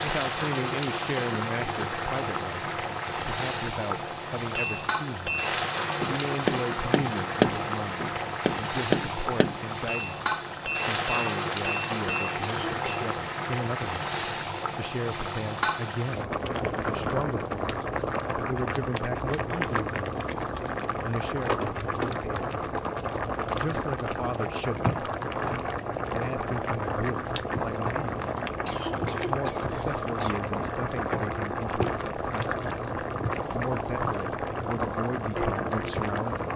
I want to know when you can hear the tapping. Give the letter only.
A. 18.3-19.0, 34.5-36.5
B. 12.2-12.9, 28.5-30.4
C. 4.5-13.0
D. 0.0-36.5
C.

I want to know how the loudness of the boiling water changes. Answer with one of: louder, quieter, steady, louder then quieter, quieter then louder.
steady.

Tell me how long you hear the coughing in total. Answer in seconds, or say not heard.
3 s.